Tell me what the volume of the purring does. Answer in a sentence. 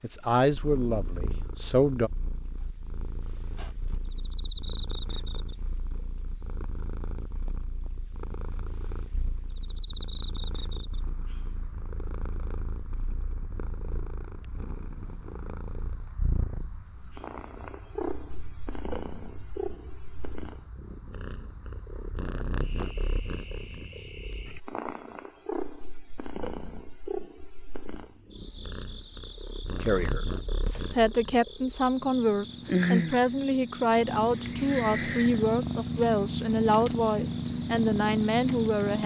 The volume of the purring goes up.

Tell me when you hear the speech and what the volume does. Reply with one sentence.
You can hear the speech briefly from 0.0 to 2.1 s; and from 29.8 to 39.0 s, at a steady volume.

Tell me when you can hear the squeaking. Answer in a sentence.
You can hear the squeaking from 3.5 to 4.2 s.